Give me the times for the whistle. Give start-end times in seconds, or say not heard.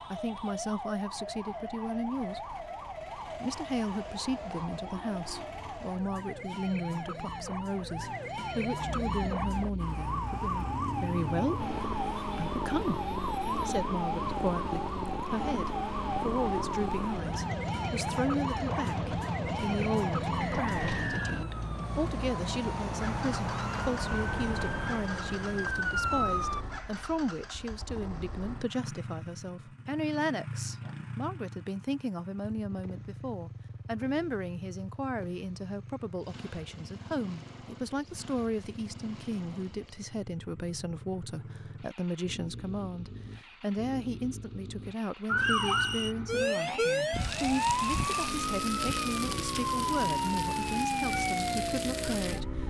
20.4-21.4, 45.4-46.1.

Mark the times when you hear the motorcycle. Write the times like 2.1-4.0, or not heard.
8.8-52.6.